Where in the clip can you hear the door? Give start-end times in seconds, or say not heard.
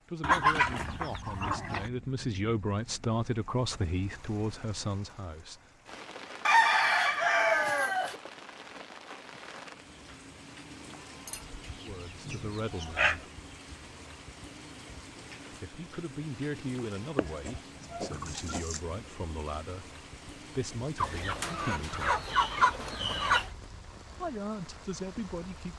not heard.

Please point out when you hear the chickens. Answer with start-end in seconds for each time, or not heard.
0.2-1.9, 6.5-8.2, 11.2-13.2, 17.1-18.8, 20.9-23.5.